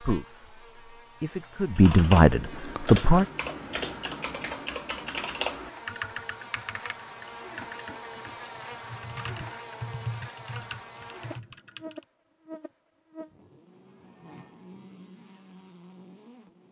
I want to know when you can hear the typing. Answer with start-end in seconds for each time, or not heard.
1.8-12.0.